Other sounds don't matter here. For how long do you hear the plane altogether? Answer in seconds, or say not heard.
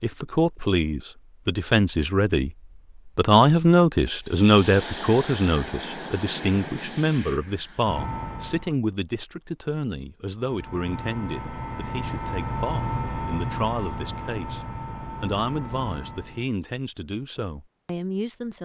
11 s.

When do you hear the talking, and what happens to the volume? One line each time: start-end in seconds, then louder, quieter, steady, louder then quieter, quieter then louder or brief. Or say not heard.
0.0-2.5 brief
3.1-18.6 quieter.